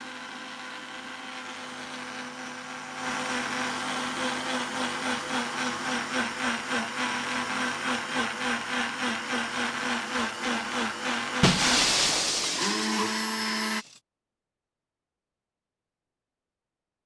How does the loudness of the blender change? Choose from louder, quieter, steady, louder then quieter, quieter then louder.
louder.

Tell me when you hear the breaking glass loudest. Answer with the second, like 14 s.
12 s.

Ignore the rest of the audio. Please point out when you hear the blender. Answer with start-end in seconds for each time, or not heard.
0.0-13.8.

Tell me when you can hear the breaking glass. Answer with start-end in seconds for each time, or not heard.
11.4-13.8.